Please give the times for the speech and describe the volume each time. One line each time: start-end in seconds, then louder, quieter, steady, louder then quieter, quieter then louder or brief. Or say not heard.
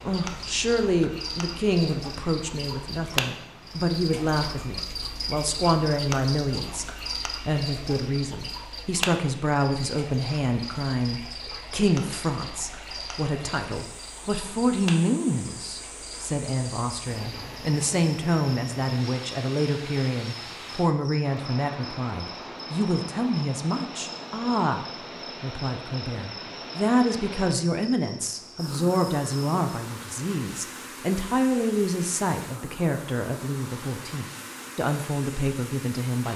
0.0-36.3 steady.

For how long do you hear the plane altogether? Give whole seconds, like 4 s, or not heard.
not heard.